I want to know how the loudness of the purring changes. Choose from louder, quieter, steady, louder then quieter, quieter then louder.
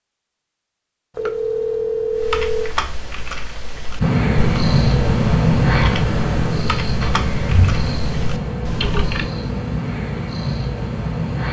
quieter.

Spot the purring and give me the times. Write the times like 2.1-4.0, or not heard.
4.0-11.4.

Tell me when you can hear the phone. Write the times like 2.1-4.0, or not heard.
1.1-2.8.